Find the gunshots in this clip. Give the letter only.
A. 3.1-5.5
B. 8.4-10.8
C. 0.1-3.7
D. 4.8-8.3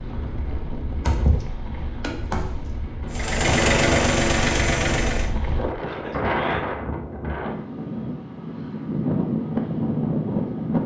C.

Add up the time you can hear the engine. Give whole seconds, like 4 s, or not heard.
2 s.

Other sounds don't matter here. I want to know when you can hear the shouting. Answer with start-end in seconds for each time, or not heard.
not heard.